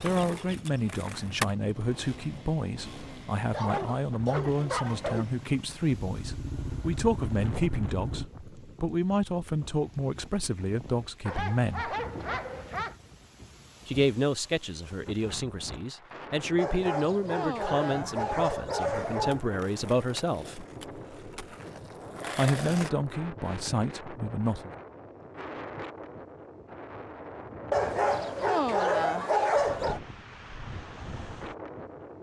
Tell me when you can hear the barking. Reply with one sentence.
The barking can be heard from 3.5 to 5.2 s, from 11.2 to 12.9 s, from 16.6 to 19.5 s and from 27.7 to 30.0 s.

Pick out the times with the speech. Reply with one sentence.
The speech can be heard from 0.0 to 11.9 s, from 13.8 to 20.6 s and from 22.4 to 24.7 s.